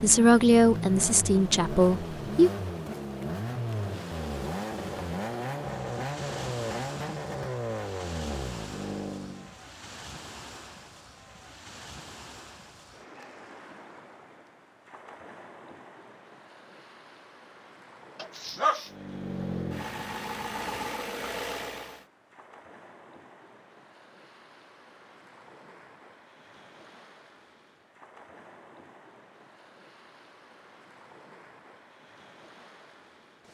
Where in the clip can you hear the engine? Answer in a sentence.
You can hear the engine from 0.0 to 9.6 s and from 18.9 to 22.1 s.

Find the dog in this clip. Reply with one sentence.
The dog can be heard from 18.1 to 18.9 s.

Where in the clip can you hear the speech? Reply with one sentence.
The speech can be heard from 0.0 to 2.5 s.